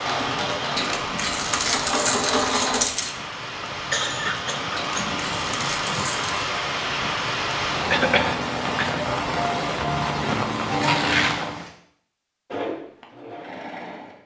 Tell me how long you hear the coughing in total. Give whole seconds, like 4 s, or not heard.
3 s.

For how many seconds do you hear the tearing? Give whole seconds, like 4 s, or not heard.
5 s.